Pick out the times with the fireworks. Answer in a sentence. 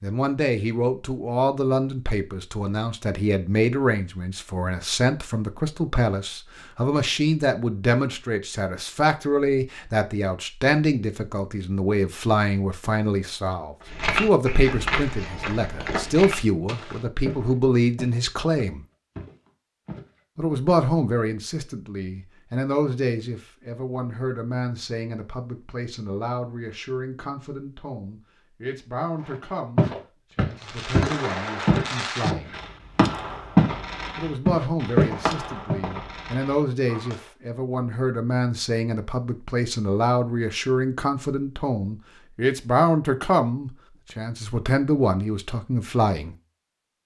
The fireworks can be heard from 30.6 to 37.3 s.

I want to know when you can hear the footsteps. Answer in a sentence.
You can hear the footsteps from 13.9 to 20.1 s, from 29.2 to 33.8 s and from 34.5 to 35.8 s.